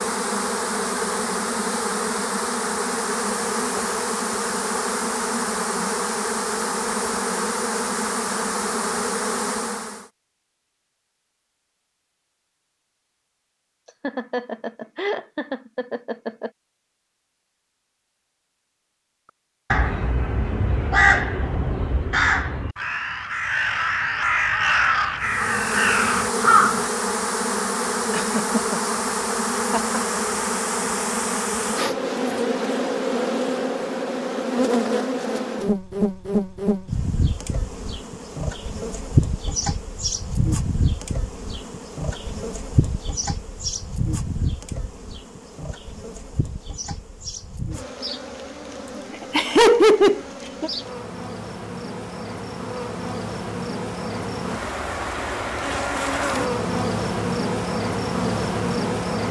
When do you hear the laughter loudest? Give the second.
50 s.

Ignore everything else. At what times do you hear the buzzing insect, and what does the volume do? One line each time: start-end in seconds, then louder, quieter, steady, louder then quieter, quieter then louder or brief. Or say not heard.
0.0-10.1 steady
25.2-59.2 quieter then louder.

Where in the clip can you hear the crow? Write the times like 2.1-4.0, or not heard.
19.7-26.9.